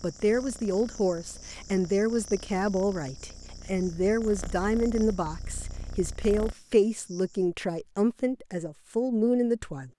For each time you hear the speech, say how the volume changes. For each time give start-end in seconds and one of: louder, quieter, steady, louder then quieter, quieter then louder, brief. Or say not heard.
0.0-9.9 steady.